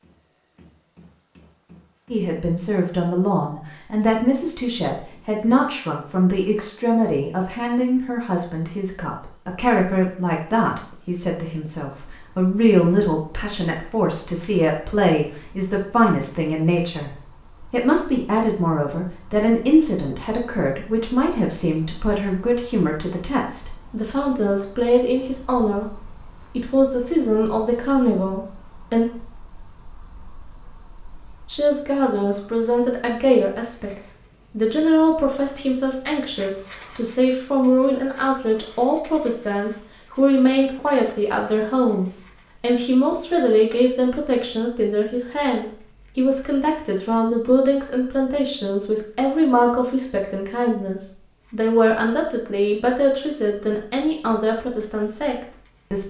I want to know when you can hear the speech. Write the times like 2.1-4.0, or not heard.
2.1-17.1, 17.7-29.1, 31.4-56.0.